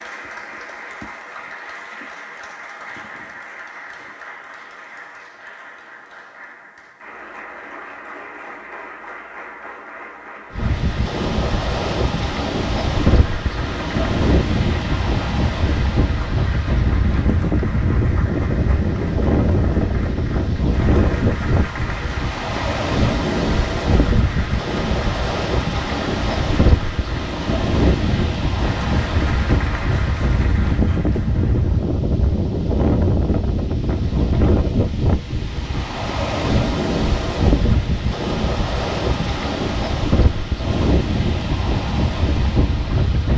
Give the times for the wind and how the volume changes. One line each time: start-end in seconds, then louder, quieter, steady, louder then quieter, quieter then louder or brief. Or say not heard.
10.5-43.3 steady.